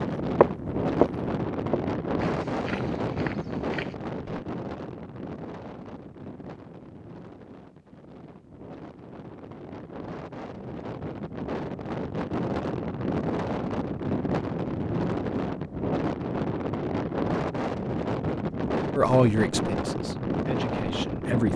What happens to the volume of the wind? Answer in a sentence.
The loudness of the wind goes down, then up.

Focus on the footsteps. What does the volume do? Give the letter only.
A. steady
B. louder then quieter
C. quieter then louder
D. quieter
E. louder
D.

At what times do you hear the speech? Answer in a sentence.
The speech can be heard from 18.9 to 21.5 s.